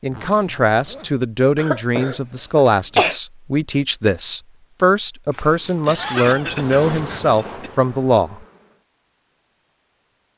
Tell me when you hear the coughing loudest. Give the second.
3 s.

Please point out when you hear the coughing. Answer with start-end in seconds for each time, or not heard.
1.6-3.2, 5.8-7.7.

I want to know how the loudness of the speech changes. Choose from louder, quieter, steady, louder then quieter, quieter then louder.
steady.